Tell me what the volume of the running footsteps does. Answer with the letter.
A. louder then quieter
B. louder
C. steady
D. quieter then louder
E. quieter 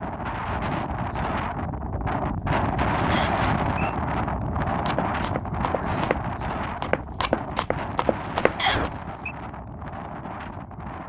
B.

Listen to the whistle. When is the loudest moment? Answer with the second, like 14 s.
9 s.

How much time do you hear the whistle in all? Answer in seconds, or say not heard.
2 s.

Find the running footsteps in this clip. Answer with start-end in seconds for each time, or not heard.
4.8-8.9.